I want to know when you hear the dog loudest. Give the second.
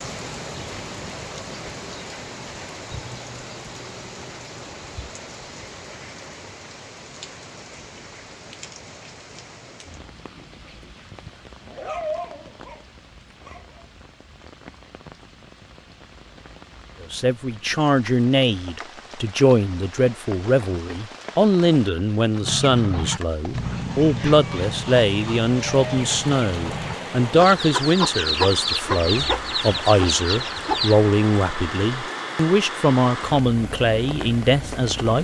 12 s.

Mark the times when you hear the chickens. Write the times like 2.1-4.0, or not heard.
22.4-30.9.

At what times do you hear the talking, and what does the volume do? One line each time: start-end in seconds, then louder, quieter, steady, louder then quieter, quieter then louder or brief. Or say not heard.
17.0-35.2 steady.